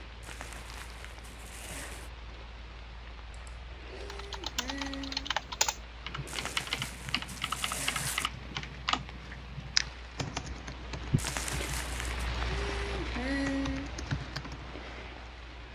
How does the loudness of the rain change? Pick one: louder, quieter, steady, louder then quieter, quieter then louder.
louder.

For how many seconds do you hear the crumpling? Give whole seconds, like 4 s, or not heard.
5 s.